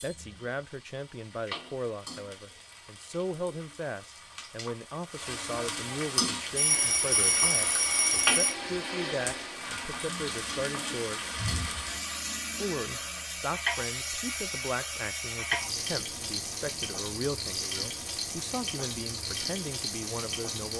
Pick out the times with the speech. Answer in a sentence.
The speech can be heard from 0.0 to 11.2 s and from 12.6 to 20.7 s.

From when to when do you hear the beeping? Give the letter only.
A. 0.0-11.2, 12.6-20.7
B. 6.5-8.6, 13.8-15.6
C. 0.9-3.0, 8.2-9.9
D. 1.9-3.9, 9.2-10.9
B.